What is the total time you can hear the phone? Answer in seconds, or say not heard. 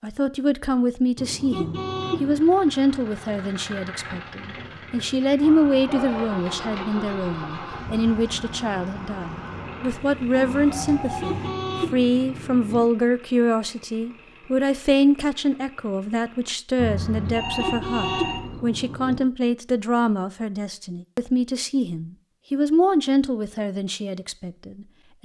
3 s.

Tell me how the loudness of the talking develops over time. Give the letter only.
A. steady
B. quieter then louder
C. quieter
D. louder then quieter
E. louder
A.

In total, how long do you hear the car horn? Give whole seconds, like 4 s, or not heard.
5 s.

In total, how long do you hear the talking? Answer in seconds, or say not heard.
25 s.